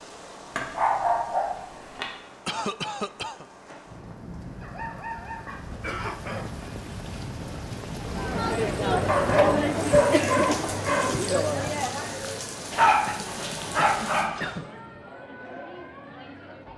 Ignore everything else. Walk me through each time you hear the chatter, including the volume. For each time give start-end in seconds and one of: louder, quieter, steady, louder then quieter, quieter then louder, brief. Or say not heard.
8.0-16.7 quieter.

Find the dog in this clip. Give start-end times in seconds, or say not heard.
0.6-2.0, 4.6-6.8, 9.1-11.1, 12.7-14.4.